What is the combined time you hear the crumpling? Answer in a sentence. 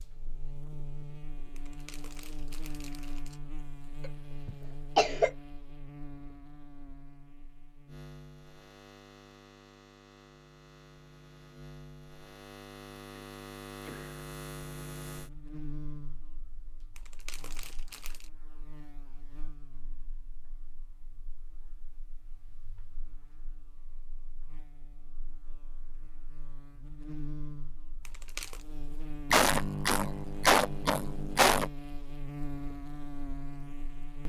You can hear the crumpling for 4 seconds altogether.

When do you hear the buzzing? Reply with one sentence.
The buzzing can be heard from 0.0 to 34.2 s.